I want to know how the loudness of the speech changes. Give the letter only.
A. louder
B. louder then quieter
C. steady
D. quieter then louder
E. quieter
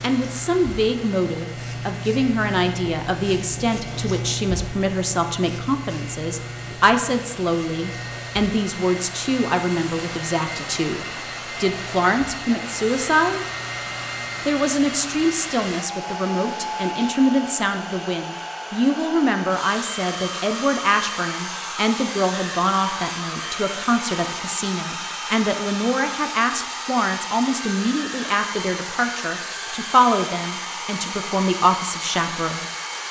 C.